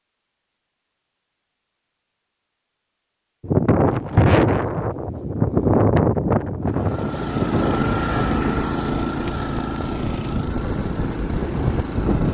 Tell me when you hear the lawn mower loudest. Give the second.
8 s.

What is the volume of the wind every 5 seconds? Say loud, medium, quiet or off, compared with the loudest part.
loud, loud, medium.